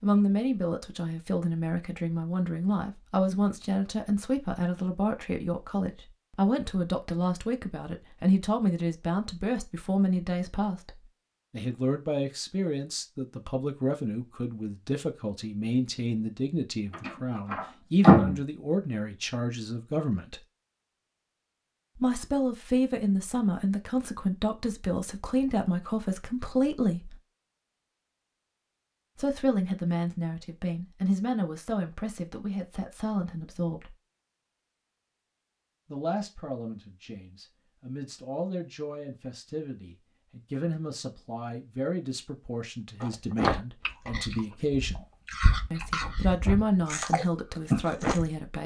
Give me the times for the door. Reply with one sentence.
The door can be heard from 16.9 to 18.4 s.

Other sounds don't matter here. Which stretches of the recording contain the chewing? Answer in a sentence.
You can hear the chewing from 43.0 to 48.3 s.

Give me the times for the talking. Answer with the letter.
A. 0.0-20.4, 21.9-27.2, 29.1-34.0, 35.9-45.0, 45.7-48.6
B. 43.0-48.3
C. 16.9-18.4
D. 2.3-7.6
A.